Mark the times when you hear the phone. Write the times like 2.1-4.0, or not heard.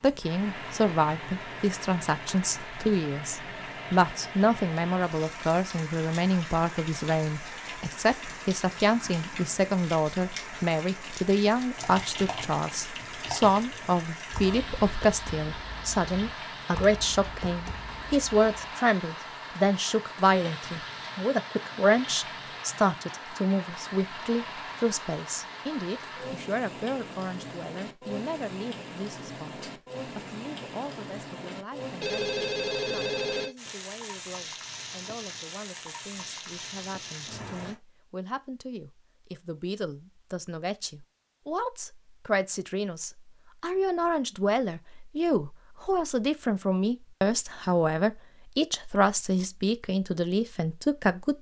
32.0-33.5.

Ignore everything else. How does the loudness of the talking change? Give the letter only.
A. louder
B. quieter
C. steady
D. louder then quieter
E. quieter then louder
E.